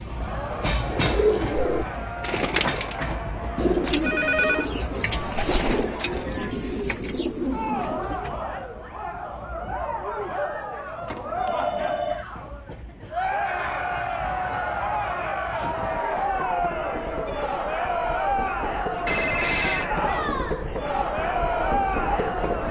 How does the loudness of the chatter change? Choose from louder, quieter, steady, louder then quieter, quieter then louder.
louder.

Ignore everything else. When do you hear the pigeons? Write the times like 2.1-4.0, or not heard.
0.5-8.3.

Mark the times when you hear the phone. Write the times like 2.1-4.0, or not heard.
4.0-4.7, 11.1-12.2, 19.1-19.9.